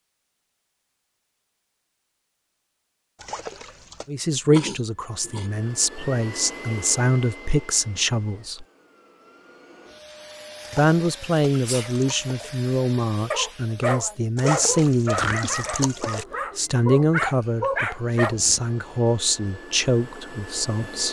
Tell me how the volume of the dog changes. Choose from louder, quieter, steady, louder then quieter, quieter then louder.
quieter then louder.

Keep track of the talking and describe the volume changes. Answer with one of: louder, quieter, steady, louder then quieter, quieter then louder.
steady.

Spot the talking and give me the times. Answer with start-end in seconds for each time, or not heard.
4.0-8.7, 10.7-21.0.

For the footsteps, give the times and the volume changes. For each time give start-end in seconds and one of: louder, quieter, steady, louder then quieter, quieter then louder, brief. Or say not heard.
not heard.